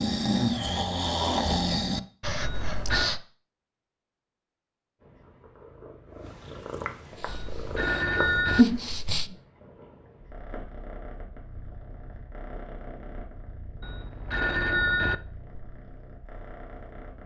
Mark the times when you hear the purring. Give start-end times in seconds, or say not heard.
5.0-17.2.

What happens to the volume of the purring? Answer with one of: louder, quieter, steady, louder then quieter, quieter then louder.
louder then quieter.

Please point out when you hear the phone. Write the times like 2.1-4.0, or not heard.
2.4-3.1, 7.2-8.7, 13.8-15.2.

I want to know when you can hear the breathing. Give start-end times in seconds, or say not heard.
0.0-3.2, 7.1-9.3.